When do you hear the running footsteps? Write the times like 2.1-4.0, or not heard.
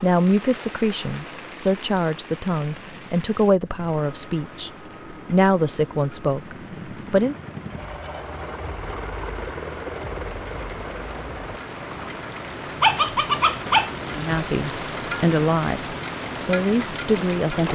not heard.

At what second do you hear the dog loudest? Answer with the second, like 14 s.
13 s.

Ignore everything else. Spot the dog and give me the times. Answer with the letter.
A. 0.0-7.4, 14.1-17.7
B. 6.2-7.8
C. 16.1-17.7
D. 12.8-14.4
D.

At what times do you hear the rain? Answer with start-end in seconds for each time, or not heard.
0.0-17.7.